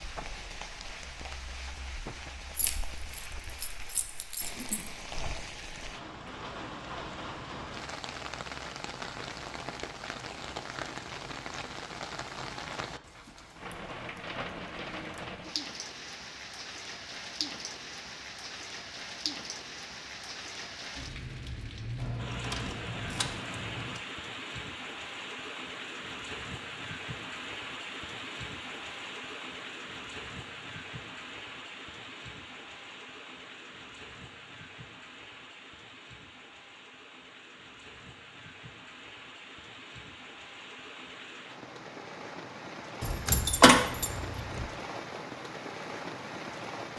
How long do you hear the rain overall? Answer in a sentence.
You can hear the rain for 47 seconds altogether.